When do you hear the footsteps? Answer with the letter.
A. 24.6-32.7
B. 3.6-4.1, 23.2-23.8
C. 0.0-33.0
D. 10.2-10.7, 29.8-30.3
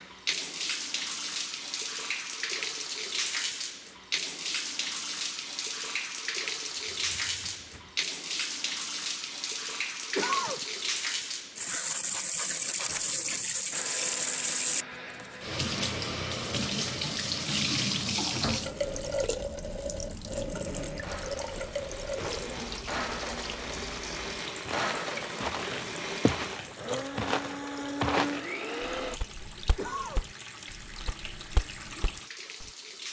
A.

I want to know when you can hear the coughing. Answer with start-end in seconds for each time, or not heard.
10.2-10.7, 29.8-30.3.